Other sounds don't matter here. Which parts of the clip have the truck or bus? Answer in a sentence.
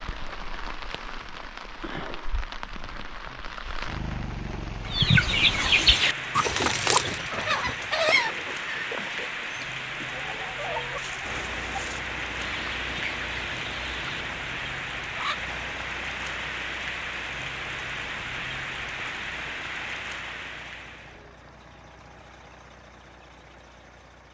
The truck or bus can be heard from 11.2 to 24.3 s.